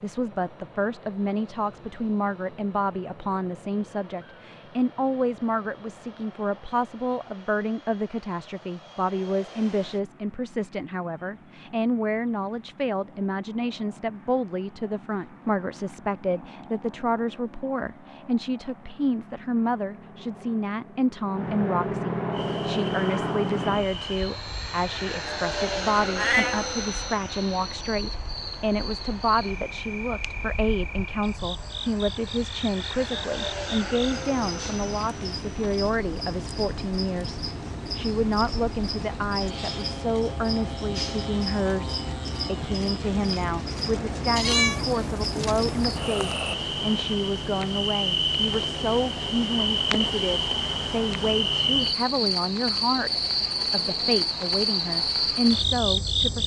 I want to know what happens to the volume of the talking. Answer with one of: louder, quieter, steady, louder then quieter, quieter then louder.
steady.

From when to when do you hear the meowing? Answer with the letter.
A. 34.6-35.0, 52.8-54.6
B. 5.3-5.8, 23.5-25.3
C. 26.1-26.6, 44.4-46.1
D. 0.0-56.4
C.